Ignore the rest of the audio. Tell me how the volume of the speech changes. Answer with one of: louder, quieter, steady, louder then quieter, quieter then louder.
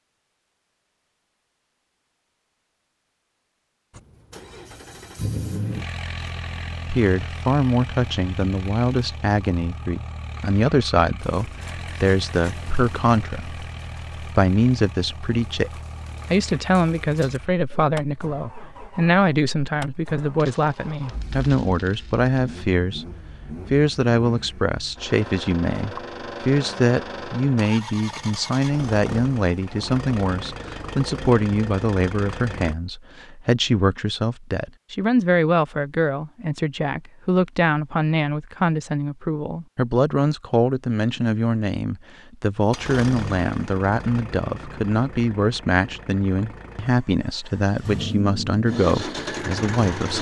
steady.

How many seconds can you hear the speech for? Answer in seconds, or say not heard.
43 s.